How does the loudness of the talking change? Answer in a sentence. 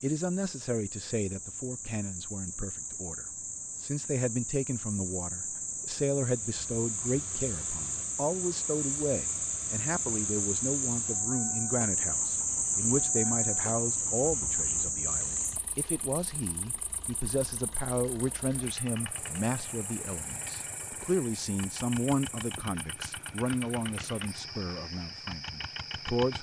The loudness of the talking stays about the same.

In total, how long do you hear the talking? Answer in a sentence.
You can hear the talking for 26 seconds altogether.